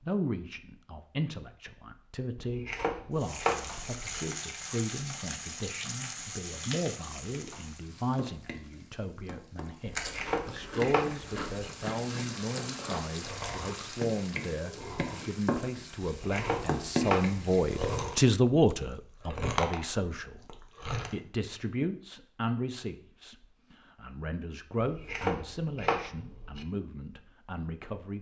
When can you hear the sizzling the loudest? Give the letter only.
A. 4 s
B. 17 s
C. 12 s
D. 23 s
B.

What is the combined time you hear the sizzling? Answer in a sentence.
The sizzling can be heard for 15 seconds in total.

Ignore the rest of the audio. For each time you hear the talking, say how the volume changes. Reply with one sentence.
The talking can be heard from 0.0 to 28.1 s, getting louder then quieter.